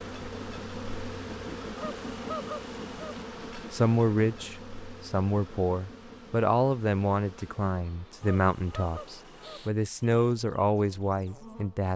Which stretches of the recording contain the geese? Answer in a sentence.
The geese can be heard from 1.8 to 3.2 s and from 8.2 to 9.7 s.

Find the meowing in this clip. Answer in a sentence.
The meowing can't be heard in this clip.